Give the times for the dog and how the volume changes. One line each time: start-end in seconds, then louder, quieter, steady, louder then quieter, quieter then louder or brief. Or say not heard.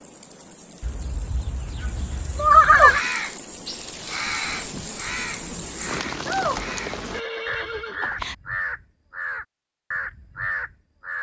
not heard.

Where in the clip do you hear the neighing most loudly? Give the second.
3 s.